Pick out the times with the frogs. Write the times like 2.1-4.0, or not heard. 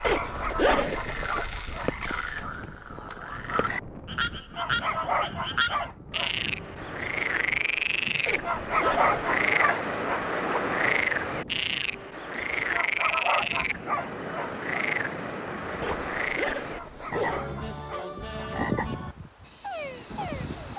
0.0-20.7.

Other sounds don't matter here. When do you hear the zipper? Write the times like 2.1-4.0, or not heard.
0.0-1.4, 8.2-9.2, 15.8-17.4.